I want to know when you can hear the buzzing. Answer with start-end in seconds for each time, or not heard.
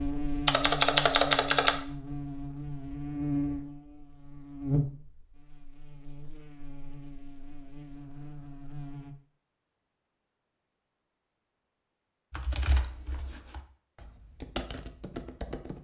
0.0-9.2.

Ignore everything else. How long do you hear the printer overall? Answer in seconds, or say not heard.
not heard.